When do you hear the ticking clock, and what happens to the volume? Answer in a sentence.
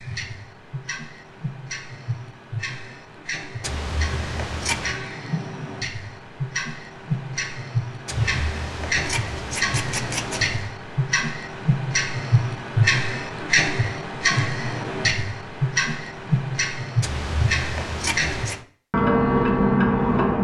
The ticking clock can be heard from 0.0 to 20.4 s, getting louder.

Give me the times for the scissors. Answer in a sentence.
The scissors can be heard from 3.6 to 5.0 s, from 8.1 to 10.7 s and from 17.0 to 18.6 s.